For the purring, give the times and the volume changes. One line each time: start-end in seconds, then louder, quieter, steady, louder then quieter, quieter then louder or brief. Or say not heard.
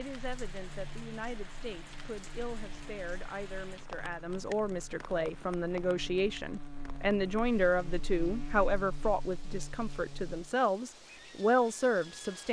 not heard.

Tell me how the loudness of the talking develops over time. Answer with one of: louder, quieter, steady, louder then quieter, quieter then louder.
louder.